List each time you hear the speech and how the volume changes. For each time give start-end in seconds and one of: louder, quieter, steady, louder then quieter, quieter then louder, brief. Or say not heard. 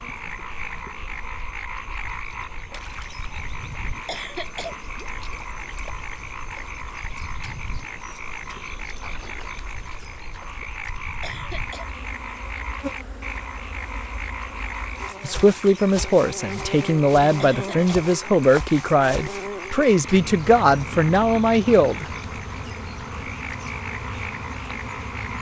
15.2-22.1 steady.